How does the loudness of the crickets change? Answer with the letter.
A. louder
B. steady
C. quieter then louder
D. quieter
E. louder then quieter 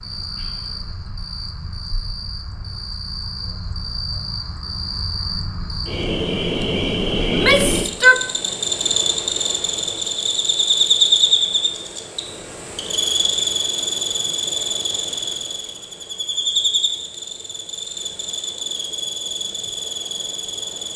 E.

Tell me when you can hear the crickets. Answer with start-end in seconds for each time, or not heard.
0.0-20.9.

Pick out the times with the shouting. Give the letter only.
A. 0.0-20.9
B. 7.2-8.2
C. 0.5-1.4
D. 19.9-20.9
B.